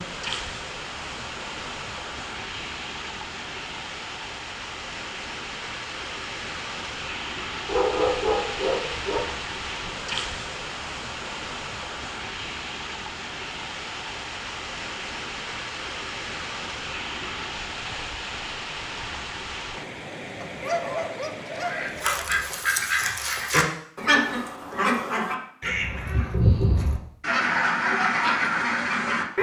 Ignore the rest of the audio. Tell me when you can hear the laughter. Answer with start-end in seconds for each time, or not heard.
not heard.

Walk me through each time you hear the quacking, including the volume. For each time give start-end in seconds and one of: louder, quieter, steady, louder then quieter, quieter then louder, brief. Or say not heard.
21.6-29.3 steady.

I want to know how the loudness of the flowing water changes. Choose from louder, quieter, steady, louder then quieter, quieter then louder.
steady.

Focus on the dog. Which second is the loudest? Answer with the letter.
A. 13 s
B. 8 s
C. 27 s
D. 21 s
B.